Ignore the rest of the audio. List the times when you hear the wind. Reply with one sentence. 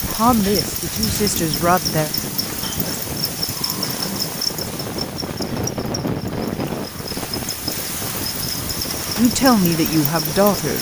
The wind can be heard from 0.0 to 10.7 s.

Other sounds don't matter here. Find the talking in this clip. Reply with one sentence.
The talking can be heard from 0.0 to 2.1 s and from 9.2 to 10.7 s.